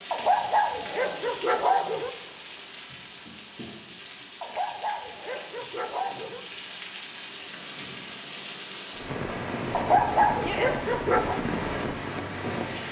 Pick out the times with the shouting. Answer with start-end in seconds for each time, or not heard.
10.3-10.8.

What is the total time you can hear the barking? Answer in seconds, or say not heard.
6 s.